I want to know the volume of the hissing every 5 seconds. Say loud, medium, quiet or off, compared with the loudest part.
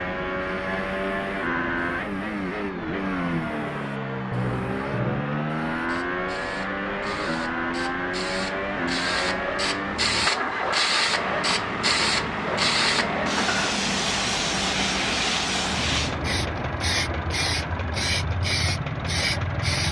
quiet, medium, loud, loud.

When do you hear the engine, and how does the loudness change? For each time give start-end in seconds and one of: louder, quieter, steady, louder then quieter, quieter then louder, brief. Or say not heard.
0.0-19.8 steady.